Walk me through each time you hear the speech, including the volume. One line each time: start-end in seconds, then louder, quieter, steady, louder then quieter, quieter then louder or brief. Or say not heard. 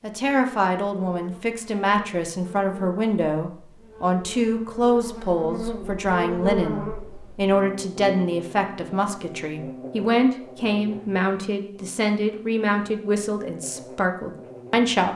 0.0-15.1 steady.